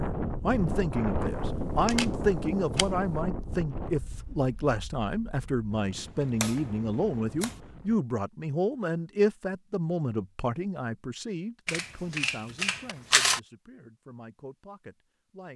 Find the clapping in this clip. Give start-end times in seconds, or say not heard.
not heard.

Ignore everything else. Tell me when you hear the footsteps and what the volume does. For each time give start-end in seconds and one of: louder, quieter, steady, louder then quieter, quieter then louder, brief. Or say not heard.
not heard.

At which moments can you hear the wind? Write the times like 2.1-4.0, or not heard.
0.0-8.0.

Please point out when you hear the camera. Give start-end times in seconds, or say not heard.
1.4-3.2, 6.0-7.6, 11.7-13.4.